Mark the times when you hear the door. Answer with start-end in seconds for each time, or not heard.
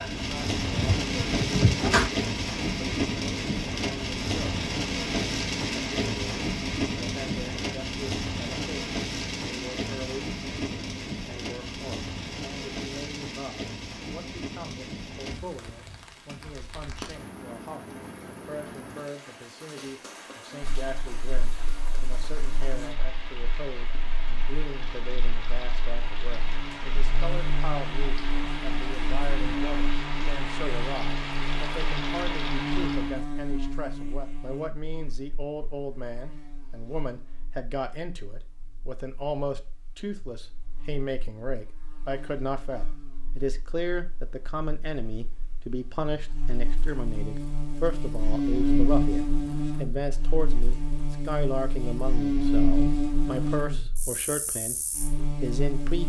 0.7-2.1.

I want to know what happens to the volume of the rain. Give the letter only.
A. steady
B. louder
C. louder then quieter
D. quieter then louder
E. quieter
D.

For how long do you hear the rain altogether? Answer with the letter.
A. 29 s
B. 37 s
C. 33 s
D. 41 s
C.